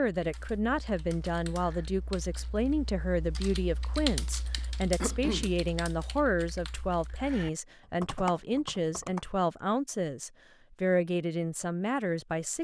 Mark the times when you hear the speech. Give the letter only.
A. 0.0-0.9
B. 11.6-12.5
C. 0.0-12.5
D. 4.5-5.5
C.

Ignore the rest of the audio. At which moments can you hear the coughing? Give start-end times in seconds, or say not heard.
4.5-5.5.